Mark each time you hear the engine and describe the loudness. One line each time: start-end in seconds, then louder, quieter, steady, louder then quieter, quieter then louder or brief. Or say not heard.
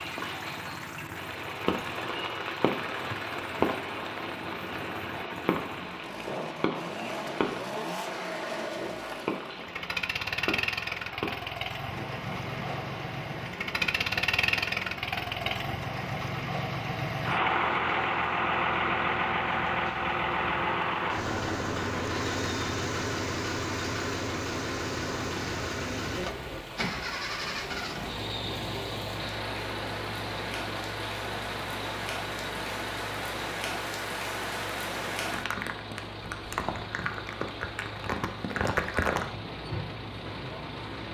0.0-41.1 louder then quieter.